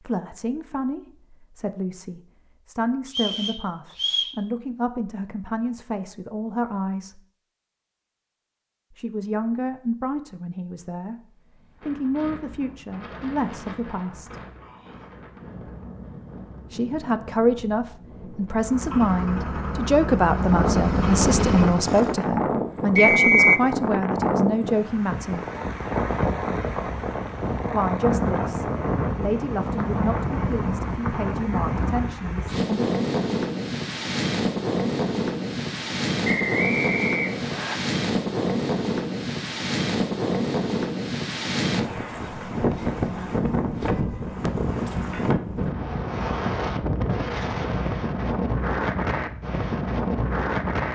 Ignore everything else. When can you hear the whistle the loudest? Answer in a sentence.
The volume of the whistle peaks at 23 seconds.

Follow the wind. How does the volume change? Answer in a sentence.
The loudness of the wind goes up.